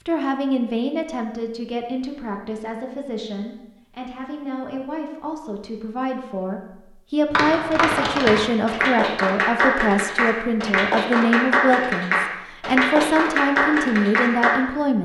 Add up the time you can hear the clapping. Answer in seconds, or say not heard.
7 s.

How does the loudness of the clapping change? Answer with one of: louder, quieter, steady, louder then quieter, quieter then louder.
steady.